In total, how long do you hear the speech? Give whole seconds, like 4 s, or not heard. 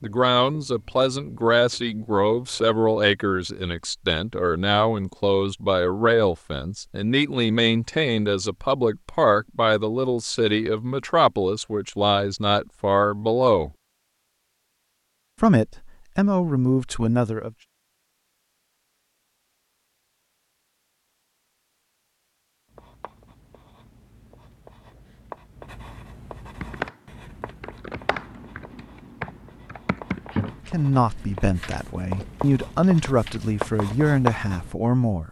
20 s.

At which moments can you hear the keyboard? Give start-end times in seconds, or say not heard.
26.6-34.1.